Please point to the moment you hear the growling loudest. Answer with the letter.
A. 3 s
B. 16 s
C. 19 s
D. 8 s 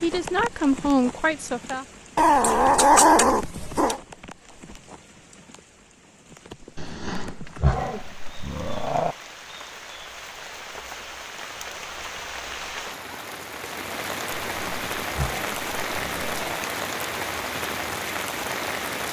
A.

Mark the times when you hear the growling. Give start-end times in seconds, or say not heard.
2.1-4.0, 6.8-9.2, 14.3-16.6.